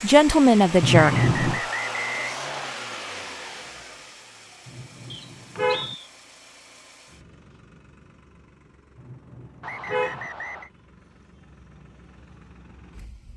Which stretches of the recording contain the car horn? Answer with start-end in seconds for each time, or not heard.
0.8-1.6, 4.7-6.0, 8.9-10.3.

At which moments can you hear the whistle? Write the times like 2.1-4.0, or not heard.
0.9-2.8, 5.1-6.1, 9.6-10.7.